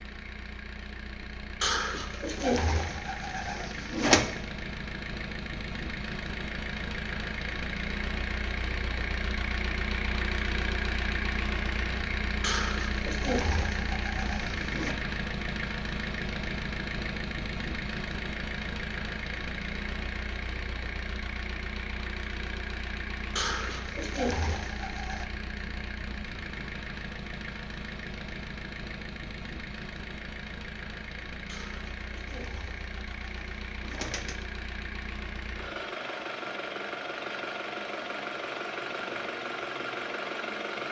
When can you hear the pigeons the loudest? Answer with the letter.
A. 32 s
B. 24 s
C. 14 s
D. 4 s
D.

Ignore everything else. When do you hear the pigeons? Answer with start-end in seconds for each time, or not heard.
1.6-4.2, 12.4-14.9, 23.4-25.2, 31.4-34.4.